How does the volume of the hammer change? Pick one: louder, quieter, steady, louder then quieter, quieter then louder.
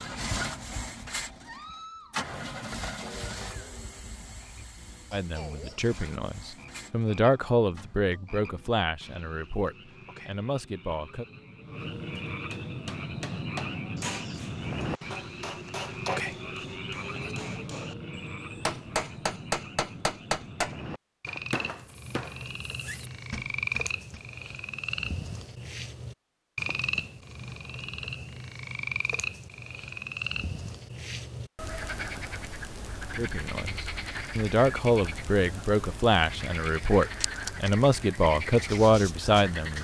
louder then quieter.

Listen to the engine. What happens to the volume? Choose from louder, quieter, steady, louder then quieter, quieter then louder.
quieter.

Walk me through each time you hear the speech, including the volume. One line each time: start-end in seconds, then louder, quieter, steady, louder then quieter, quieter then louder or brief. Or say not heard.
5.1-11.2 louder then quieter
33.1-39.7 steady.